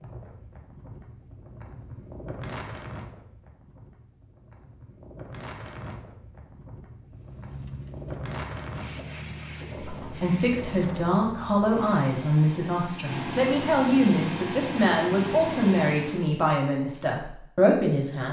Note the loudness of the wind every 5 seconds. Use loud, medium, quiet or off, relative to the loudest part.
loud, loud, loud, off.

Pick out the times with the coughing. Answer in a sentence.
You can't hear the coughing here.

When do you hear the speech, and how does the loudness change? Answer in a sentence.
The speech can be heard from 10.0 to 18.2 s, at a steady volume.